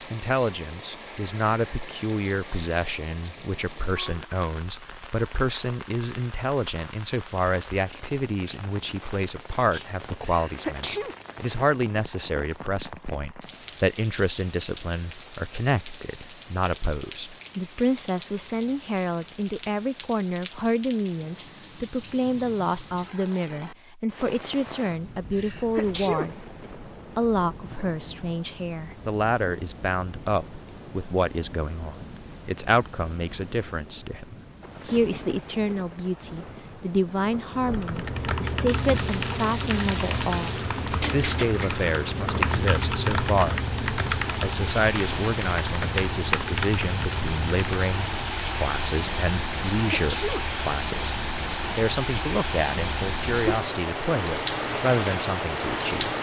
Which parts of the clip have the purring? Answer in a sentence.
The purring can't be heard in this clip.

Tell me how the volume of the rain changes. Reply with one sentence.
The volume of the rain goes up.